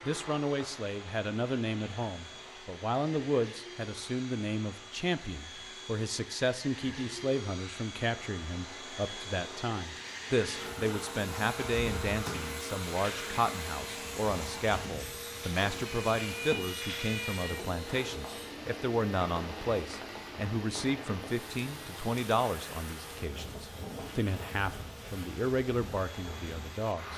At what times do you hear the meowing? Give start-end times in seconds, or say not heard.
16.1-17.9.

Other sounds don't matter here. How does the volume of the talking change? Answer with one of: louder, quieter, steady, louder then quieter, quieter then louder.
steady.